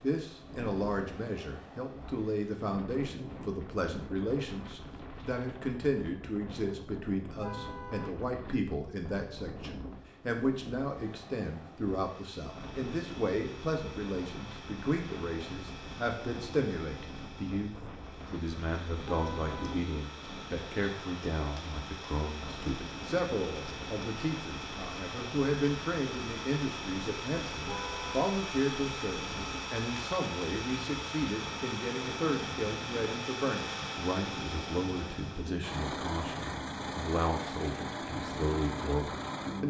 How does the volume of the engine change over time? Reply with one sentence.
The loudness of the engine goes up.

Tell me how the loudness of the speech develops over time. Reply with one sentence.
The volume of the speech stays about the same.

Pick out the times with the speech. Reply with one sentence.
You can hear the speech from 0.0 to 39.6 s.